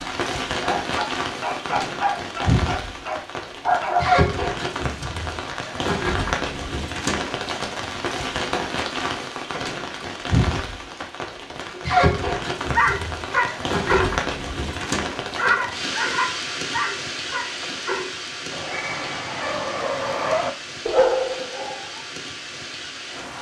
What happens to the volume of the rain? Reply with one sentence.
The volume of the rain goes down.